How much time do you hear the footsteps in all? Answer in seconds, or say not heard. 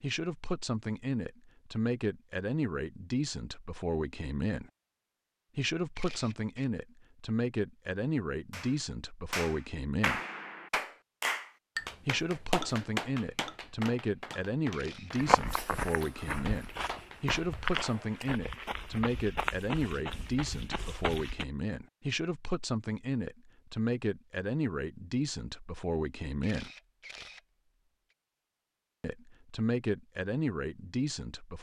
6 s.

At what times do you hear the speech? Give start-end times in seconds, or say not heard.
0.0-4.7, 5.5-10.2, 12.1-26.7, 29.0-31.5.